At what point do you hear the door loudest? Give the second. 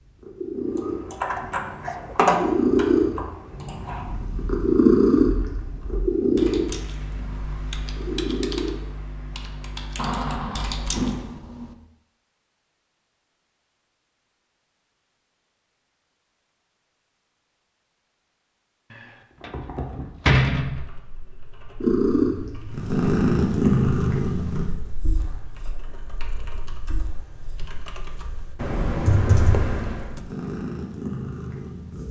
20 s.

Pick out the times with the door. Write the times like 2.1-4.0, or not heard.
9.9-11.8, 18.9-20.9.